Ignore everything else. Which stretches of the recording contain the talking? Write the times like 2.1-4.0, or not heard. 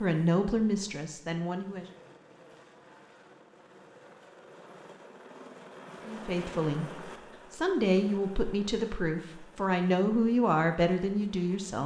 0.0-1.9, 6.0-11.8.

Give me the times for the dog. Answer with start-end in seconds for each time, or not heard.
not heard.